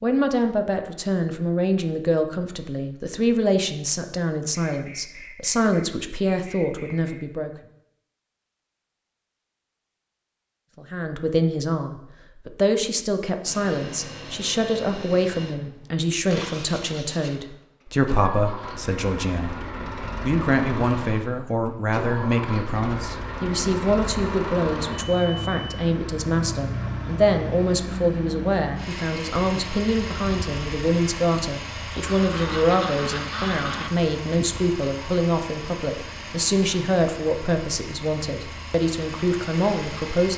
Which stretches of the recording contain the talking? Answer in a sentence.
The talking can be heard from 0.0 to 7.5 s and from 10.8 to 40.3 s.